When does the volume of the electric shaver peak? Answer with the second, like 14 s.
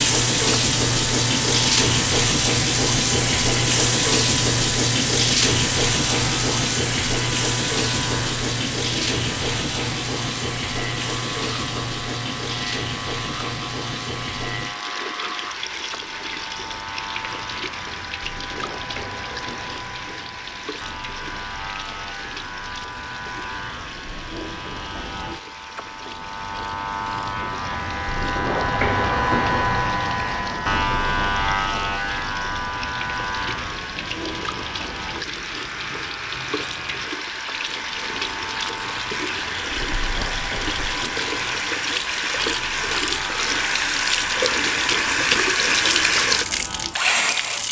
29 s.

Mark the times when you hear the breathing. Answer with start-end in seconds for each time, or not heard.
not heard.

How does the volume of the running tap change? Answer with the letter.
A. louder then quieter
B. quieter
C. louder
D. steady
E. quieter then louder
E.